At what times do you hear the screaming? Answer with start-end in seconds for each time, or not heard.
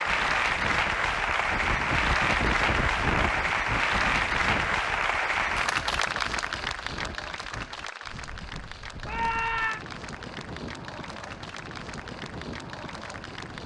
9.1-9.8.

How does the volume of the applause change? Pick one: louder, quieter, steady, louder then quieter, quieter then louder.
quieter.